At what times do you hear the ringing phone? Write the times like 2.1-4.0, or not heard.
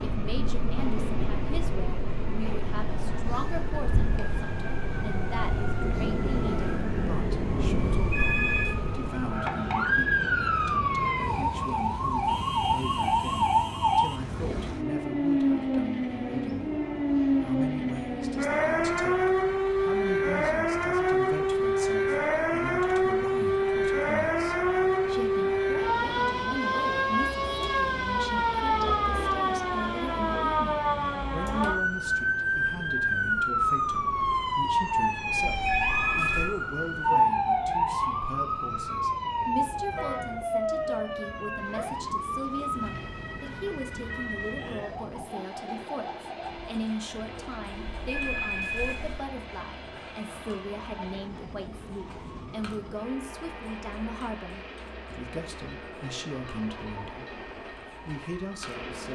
8.0-8.8, 35.3-36.5, 47.7-49.2.